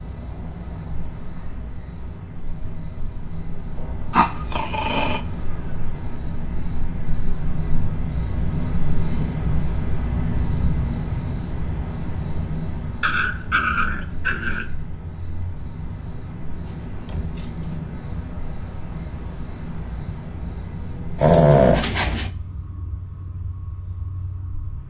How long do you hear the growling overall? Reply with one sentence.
The growling can be heard for 4 seconds in total.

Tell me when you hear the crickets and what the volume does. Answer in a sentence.
You can hear the crickets from 0.0 to 24.8 s, getting louder then quieter.